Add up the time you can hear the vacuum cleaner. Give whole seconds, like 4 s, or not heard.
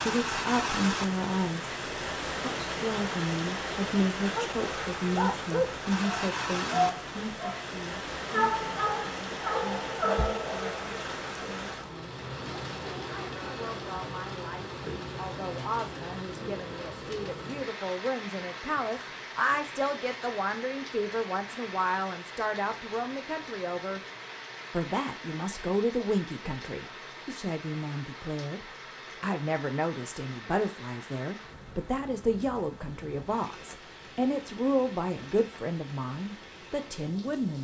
not heard.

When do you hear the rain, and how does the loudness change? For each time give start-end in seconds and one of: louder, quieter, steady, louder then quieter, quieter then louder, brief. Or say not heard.
0.0-37.5 quieter.